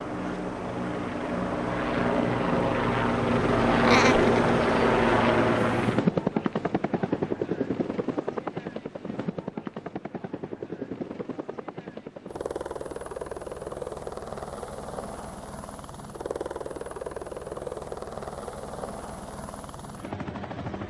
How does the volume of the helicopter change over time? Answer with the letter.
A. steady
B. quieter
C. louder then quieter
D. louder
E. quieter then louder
B.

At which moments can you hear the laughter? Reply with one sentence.
The laughter can be heard from 3.8 to 4.5 s.